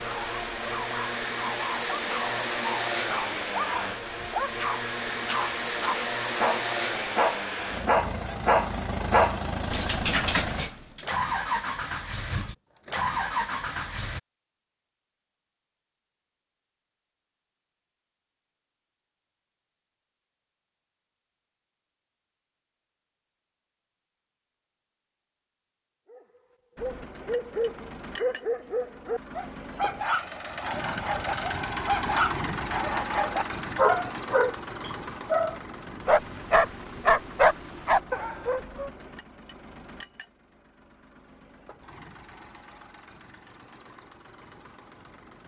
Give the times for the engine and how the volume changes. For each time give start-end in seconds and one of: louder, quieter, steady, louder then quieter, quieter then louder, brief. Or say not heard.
0.0-14.2 steady
26.8-45.4 louder then quieter.